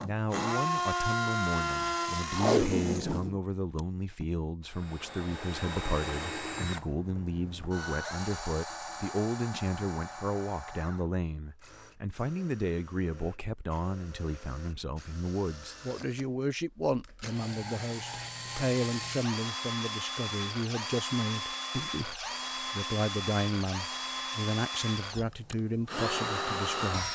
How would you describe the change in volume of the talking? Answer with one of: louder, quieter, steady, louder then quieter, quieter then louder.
steady.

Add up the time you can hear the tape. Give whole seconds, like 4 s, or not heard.
2 s.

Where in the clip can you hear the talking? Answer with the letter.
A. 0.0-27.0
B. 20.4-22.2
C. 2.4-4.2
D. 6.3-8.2
A.